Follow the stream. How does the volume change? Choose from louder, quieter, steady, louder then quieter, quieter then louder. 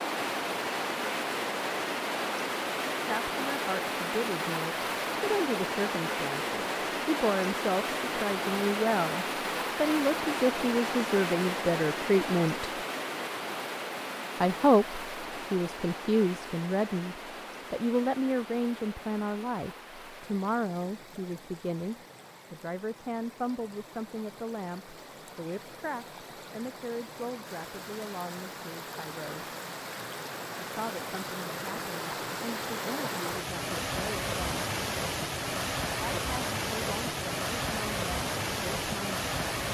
quieter then louder.